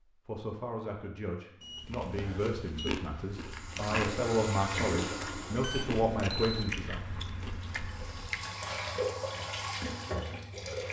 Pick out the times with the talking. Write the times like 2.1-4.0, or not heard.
0.2-7.0.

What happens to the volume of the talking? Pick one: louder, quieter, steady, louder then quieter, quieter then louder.
louder.